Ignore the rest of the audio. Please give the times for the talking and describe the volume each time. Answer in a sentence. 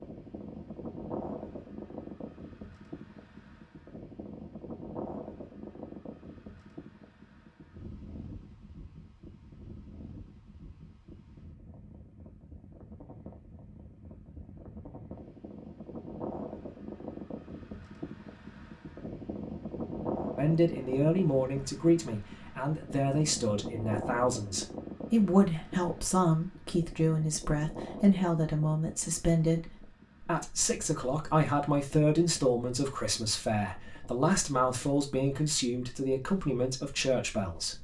You can hear the talking from 20.4 to 37.7 s, at a steady volume.